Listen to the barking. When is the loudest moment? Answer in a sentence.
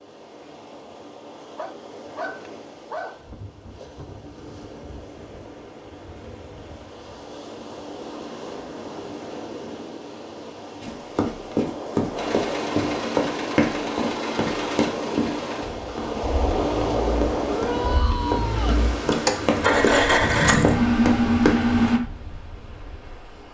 The loudest moment of the barking is at 3 seconds.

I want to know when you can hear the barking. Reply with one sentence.
The barking can be heard from 1.6 to 3.2 s.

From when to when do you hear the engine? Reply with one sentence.
You can hear the engine from 12.2 to 22.0 s.